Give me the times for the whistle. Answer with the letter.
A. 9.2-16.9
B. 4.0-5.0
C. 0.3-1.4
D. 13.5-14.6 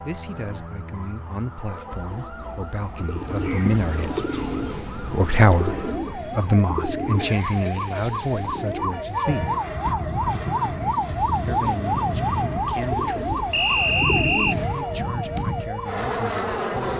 D.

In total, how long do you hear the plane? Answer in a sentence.
You can hear the plane for 8 seconds altogether.